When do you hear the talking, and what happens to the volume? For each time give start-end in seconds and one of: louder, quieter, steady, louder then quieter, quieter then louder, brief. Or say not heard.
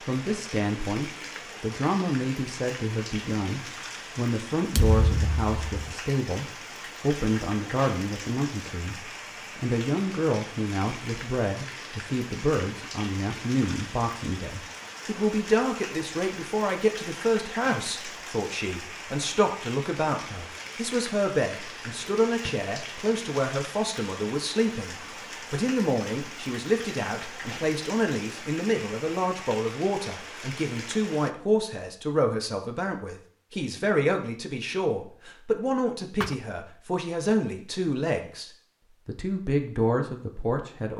0.0-40.9 steady.